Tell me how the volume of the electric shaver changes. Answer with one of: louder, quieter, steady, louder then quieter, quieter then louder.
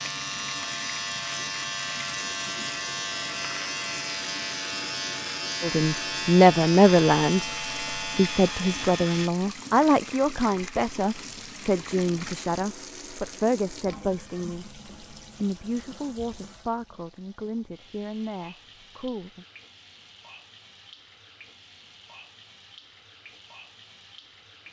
steady.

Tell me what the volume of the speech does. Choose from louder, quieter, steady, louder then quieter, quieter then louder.
quieter.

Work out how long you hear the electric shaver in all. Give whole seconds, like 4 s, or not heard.
9 s.